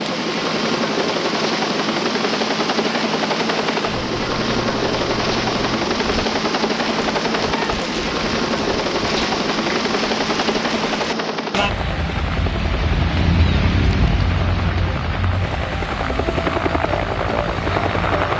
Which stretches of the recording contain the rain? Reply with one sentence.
You can hear the rain from 0.0 to 18.3 s.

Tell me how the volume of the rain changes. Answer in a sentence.
The volume of the rain goes up, then down.